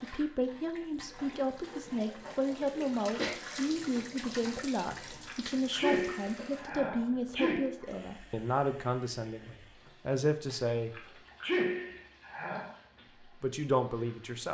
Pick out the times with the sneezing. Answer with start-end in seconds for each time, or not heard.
1.4-3.4, 5.0-7.7, 10.9-12.8.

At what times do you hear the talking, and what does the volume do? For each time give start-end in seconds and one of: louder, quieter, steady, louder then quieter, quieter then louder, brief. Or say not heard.
0.0-10.9 steady
13.2-14.5 brief.